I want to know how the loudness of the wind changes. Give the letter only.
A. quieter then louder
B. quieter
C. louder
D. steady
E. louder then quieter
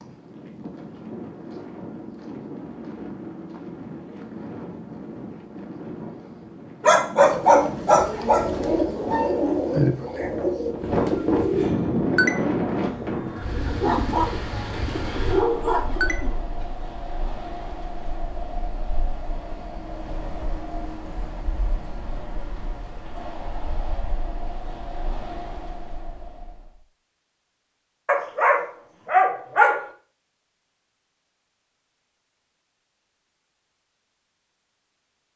E.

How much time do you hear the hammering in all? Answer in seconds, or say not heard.
not heard.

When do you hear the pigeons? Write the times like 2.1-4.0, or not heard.
7.2-16.6.